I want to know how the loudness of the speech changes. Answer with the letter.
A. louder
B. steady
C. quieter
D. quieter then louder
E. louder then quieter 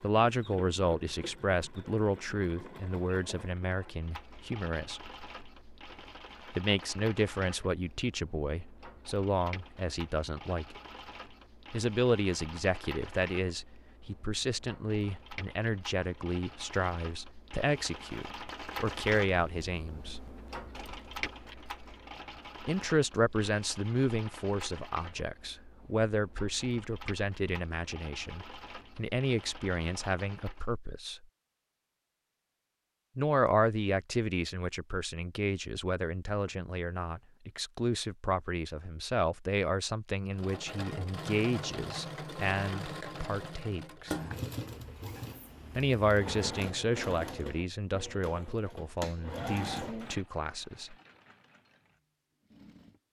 B.